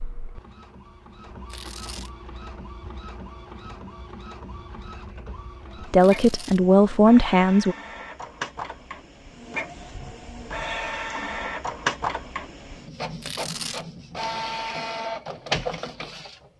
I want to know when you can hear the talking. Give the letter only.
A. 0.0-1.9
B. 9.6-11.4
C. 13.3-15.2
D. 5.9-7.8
D.